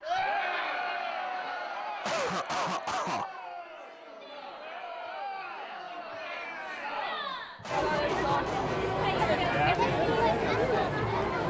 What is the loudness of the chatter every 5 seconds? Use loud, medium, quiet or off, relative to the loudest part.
medium, loud, loud.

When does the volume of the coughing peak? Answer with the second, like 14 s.
2 s.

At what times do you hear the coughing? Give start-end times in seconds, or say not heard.
2.0-3.3, 7.6-8.9.